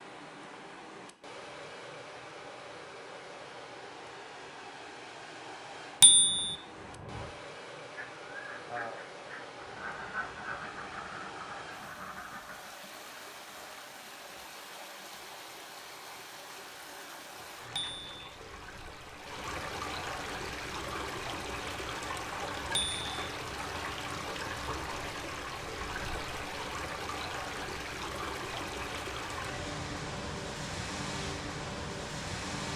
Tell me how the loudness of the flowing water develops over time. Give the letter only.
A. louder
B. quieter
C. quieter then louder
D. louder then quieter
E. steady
A.